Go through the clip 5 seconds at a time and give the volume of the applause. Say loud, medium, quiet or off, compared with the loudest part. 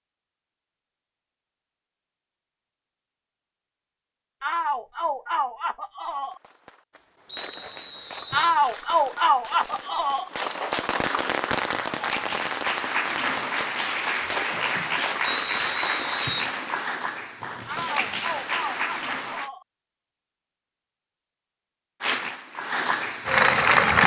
off, off, medium, medium, loud.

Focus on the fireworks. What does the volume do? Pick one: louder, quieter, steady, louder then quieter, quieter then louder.
louder then quieter.